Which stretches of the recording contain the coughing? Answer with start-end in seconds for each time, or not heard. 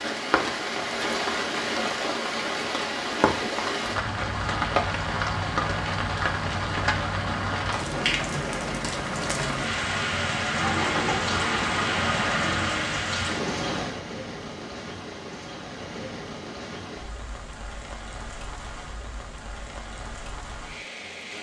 not heard.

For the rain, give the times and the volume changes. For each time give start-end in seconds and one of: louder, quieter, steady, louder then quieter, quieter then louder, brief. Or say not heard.
0.0-21.3 quieter.